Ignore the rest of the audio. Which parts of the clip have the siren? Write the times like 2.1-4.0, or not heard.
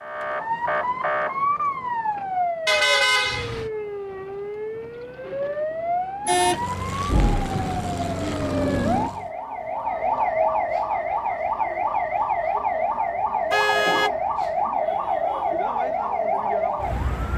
0.0-17.3.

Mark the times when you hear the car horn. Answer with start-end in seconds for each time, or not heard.
2.6-3.7, 6.2-6.7, 13.5-14.1.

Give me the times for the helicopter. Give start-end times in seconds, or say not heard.
6.3-9.3.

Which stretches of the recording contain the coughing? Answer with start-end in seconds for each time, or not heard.
not heard.